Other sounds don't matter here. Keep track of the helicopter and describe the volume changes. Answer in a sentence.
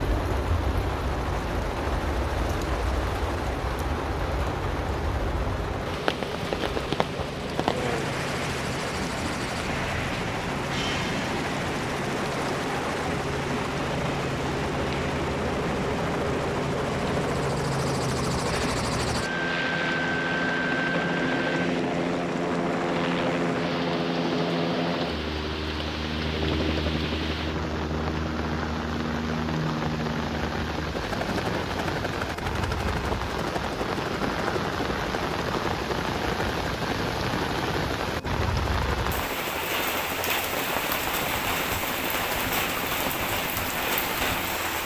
The loudness of the helicopter goes up, then down.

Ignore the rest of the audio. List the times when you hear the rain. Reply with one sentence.
The rain can be heard from 0.0 to 44.8 s.